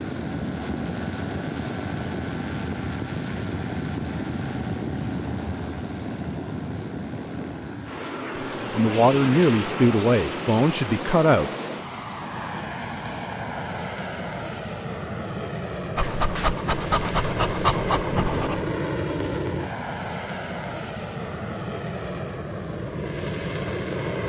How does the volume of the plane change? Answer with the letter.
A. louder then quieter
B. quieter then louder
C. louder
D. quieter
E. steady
E.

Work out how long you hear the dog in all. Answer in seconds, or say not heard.
3 s.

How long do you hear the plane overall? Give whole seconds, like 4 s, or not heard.
24 s.